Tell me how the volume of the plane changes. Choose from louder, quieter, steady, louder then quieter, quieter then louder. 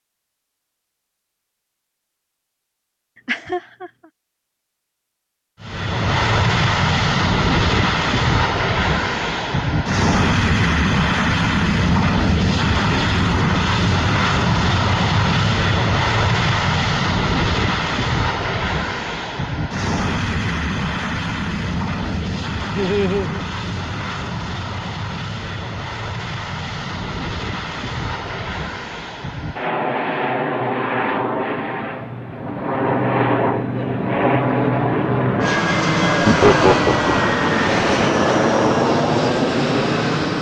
quieter then louder.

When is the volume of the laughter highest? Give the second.
37 s.